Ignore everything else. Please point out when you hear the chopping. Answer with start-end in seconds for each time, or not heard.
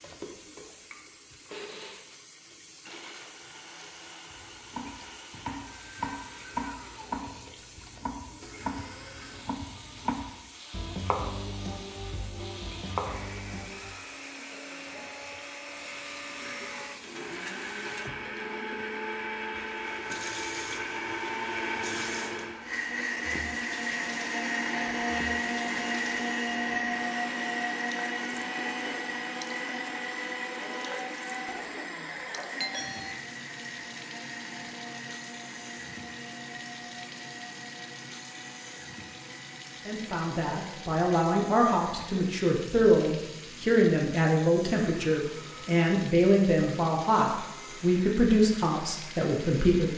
4.3-13.9.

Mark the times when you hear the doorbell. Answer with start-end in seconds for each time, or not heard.
32.6-33.1.